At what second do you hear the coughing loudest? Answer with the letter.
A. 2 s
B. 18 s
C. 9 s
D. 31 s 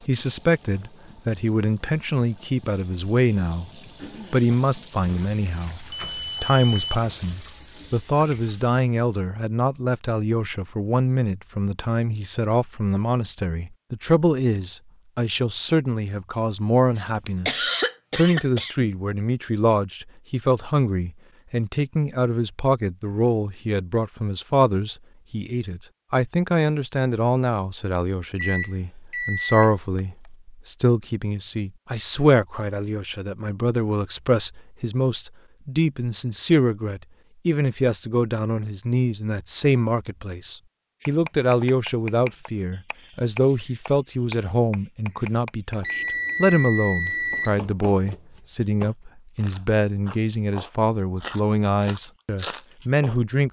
B.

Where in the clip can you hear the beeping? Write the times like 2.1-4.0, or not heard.
5.9-7.1, 28.4-30.0, 45.9-47.5.